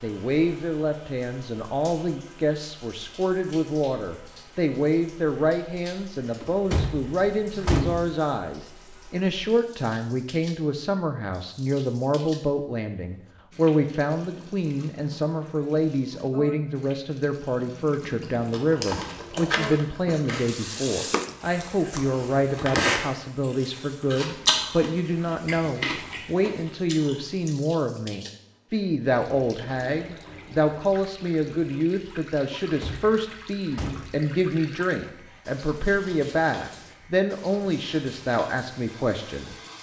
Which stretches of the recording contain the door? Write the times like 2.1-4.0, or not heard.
6.4-8.1, 32.8-34.2.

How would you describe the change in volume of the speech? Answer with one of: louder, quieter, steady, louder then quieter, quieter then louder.
steady.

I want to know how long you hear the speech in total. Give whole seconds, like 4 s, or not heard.
40 s.